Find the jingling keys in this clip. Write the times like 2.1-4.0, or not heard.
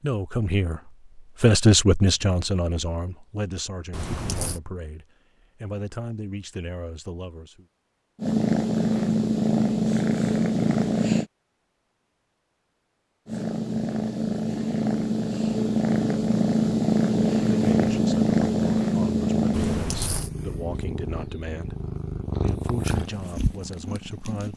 3.9-4.6, 19.5-20.3.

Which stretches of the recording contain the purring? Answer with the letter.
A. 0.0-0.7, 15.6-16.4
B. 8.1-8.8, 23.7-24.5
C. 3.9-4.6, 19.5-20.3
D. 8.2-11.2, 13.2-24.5
D.